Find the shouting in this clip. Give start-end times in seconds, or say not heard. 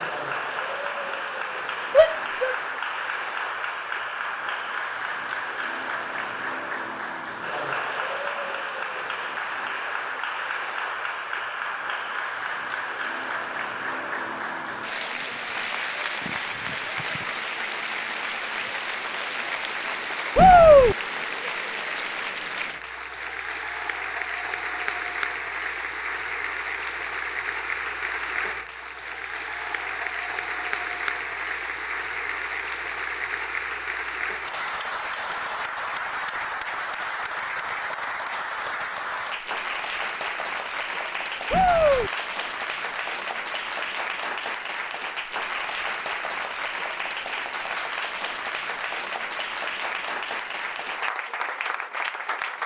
1.9-2.5, 20.4-20.9, 41.5-42.1.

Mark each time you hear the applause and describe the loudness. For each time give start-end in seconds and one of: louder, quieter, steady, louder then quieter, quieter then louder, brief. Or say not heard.
0.0-52.6 steady.